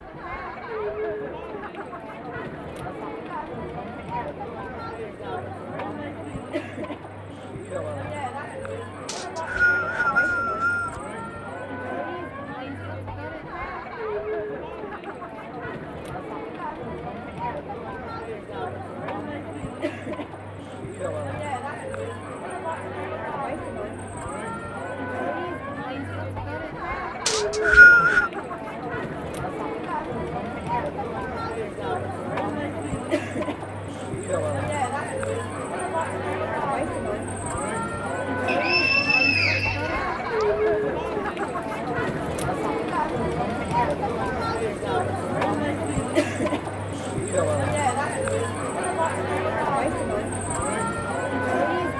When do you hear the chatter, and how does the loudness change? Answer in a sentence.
The chatter can be heard from 0.0 to 51.9 s, getting louder.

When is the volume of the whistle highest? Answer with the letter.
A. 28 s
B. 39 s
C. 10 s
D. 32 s
A.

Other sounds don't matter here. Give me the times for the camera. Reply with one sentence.
The camera can't be heard in this clip.